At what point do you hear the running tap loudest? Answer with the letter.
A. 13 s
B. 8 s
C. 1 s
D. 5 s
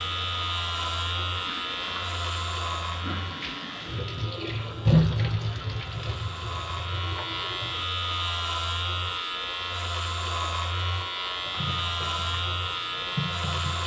D.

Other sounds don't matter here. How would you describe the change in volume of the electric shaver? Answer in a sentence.
The volume of the electric shaver goes down, then up.